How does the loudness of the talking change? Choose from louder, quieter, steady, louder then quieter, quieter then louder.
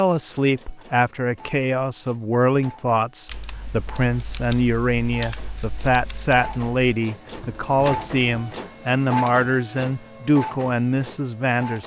steady.